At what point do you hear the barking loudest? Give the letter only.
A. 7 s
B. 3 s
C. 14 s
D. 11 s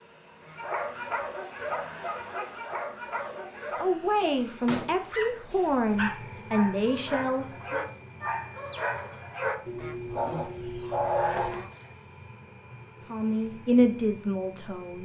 D.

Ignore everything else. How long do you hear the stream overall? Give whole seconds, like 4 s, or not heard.
not heard.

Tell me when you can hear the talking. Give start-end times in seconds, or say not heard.
3.8-7.8, 13.1-14.9.